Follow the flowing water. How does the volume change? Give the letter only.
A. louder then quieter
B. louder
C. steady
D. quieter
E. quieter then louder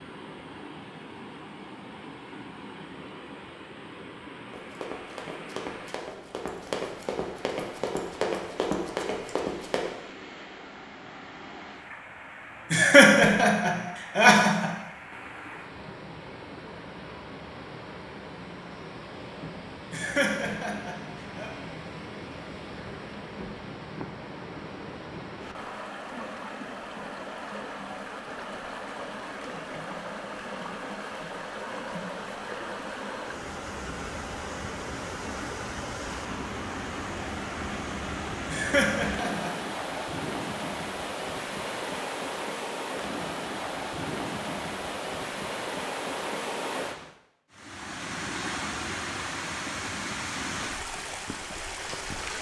B.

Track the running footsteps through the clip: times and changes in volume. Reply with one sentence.
The running footsteps can be heard from 4.5 to 9.9 s, getting louder.